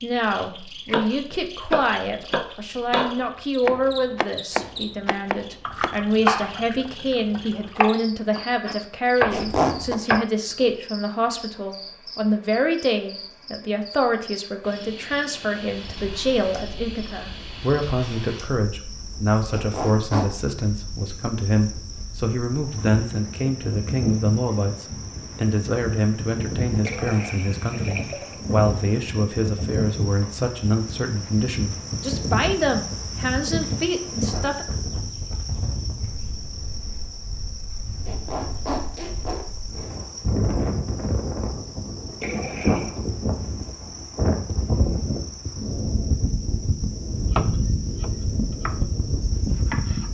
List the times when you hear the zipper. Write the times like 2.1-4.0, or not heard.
9.3-9.9, 19.5-20.3, 38.0-39.5.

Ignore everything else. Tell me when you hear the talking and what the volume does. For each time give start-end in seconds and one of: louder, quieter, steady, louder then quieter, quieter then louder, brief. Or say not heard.
0.0-34.6 steady.